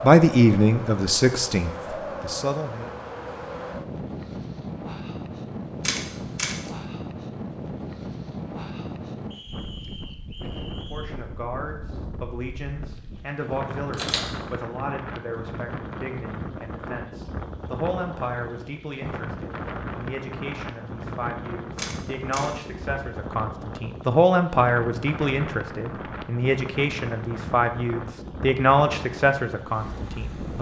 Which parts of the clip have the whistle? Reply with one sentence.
You can hear the whistle from 9.3 to 11.1 s.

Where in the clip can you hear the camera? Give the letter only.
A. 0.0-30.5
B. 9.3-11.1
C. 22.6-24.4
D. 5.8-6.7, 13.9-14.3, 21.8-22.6
D.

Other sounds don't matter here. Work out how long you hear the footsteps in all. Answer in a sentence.
You can't hear the footsteps here.